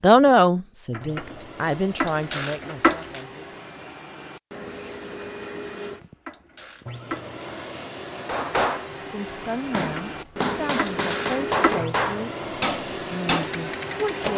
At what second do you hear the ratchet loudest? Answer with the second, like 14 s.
3 s.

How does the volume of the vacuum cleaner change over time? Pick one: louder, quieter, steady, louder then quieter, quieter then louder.
louder.